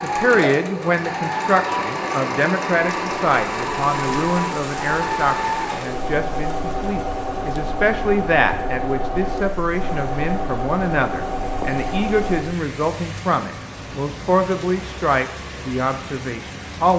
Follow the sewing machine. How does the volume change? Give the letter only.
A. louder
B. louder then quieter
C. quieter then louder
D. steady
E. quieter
D.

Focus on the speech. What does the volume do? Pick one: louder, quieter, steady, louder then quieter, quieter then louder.
steady.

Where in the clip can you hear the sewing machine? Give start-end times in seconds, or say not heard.
0.0-12.4.